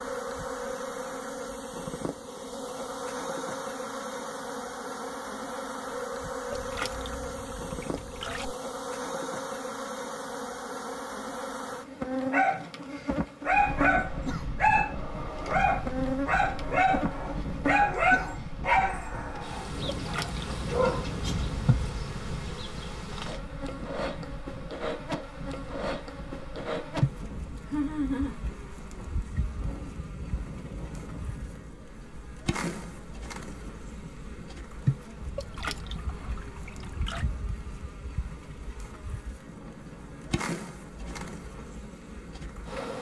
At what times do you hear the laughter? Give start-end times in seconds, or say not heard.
27.6-28.4.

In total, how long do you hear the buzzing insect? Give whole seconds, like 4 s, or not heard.
43 s.